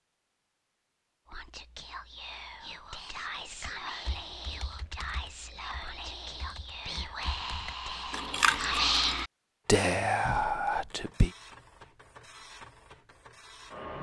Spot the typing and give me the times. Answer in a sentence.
The typing can be heard from 3.6 to 9.2 s.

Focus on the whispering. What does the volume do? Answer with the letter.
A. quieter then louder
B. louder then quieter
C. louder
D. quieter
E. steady
C.